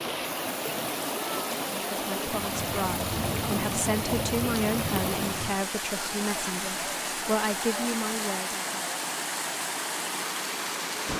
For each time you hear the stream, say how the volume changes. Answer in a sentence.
You can hear the stream from 0.0 to 11.1 s, at a steady volume.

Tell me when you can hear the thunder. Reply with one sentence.
The thunder can be heard from 2.3 to 5.6 s.